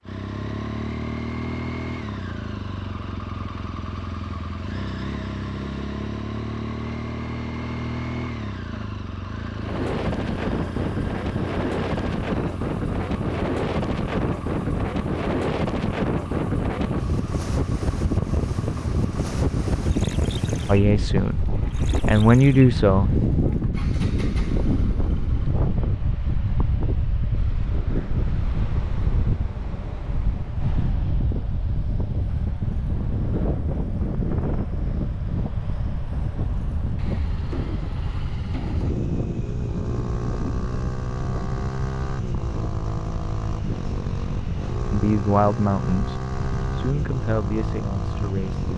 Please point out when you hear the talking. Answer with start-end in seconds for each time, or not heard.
20.6-23.1, 44.9-48.6.